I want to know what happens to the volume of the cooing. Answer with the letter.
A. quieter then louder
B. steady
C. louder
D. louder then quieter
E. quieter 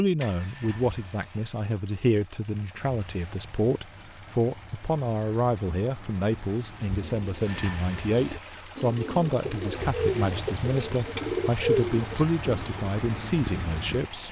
D.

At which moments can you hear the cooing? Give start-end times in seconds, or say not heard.
6.8-14.1.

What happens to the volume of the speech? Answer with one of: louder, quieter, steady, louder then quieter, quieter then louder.
steady.